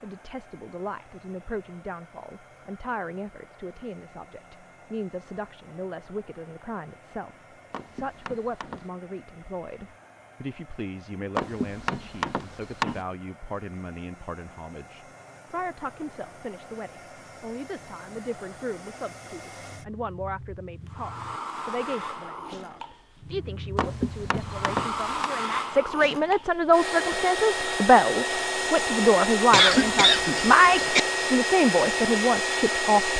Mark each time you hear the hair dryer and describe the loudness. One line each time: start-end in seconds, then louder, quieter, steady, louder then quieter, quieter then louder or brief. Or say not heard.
0.0-33.1 louder.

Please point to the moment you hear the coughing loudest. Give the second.
30 s.